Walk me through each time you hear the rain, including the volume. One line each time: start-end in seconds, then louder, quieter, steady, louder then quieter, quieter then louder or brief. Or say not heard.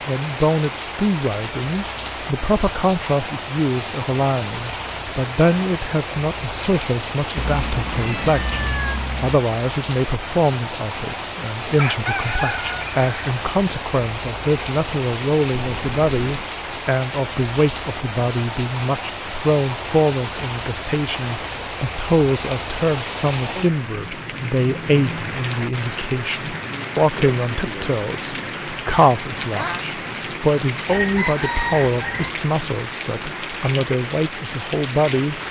0.0-35.4 steady.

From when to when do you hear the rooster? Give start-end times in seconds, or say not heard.
11.8-13.3, 30.9-32.4.